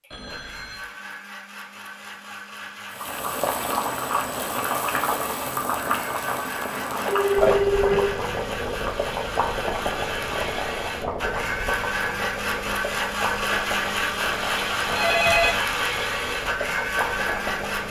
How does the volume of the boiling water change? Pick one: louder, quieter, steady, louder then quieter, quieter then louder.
quieter.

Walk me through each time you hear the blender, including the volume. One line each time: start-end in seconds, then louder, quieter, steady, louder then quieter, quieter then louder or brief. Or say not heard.
0.0-17.8 louder.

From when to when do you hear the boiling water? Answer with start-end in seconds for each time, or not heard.
2.9-17.8.